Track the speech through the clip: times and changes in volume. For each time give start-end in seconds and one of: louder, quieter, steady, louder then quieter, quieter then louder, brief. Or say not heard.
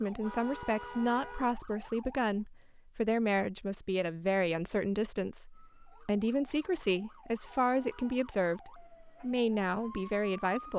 0.0-10.7 steady.